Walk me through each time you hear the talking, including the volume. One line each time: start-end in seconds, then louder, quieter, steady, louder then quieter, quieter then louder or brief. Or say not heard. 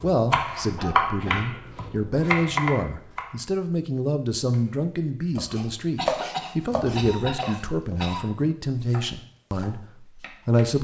0.0-10.7 steady.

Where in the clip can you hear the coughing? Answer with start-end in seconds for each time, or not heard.
0.8-1.9, 6.0-8.2.